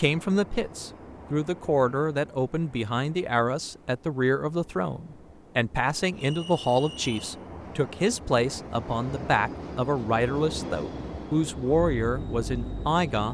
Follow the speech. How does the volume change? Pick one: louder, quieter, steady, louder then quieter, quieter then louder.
steady.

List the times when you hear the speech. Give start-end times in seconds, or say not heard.
0.0-13.2.